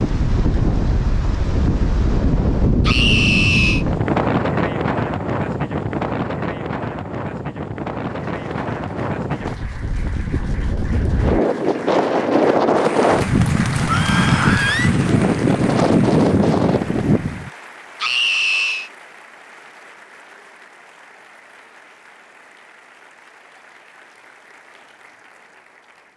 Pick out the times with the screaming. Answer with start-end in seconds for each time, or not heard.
2.9-3.9, 13.8-14.9, 18.0-18.9.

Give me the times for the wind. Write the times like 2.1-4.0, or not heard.
0.0-17.5.